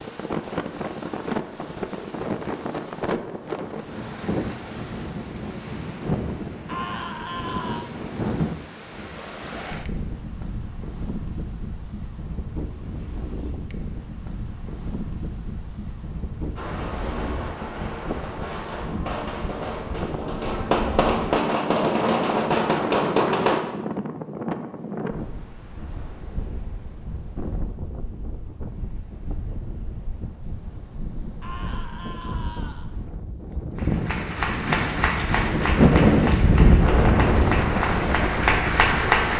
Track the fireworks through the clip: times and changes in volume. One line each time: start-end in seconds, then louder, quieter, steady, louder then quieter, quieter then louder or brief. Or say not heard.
16.6-23.6 louder.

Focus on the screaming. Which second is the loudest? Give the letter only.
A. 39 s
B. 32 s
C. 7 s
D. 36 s
C.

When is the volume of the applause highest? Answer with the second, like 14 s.
39 s.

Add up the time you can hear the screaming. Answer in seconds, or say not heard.
3 s.